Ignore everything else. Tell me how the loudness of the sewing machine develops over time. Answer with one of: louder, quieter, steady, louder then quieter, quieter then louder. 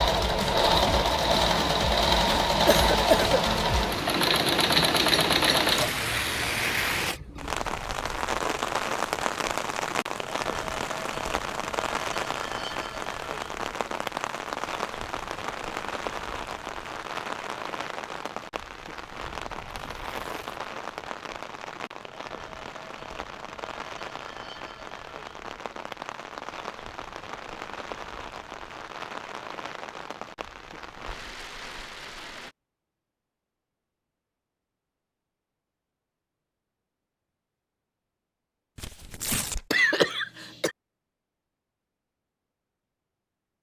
steady.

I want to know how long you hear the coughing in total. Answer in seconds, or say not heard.
2 s.